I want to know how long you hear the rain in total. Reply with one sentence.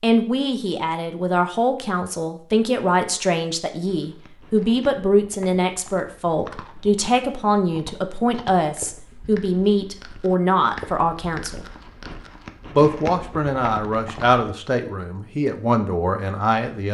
You can't hear the rain here.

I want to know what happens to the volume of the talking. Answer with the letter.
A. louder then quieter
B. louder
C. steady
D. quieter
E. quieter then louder
C.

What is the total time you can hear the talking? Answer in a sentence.
You can hear the talking for 16 seconds altogether.